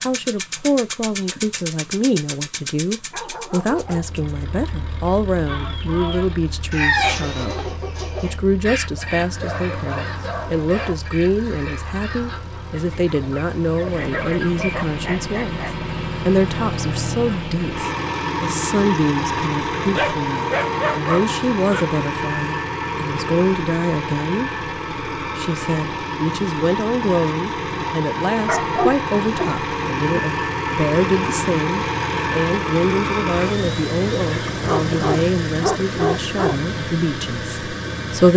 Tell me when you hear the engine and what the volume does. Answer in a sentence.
You can hear the engine from 0.0 to 38.3 s, getting louder.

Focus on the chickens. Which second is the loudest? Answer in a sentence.
The loudest moment of the chickens is at 7 seconds.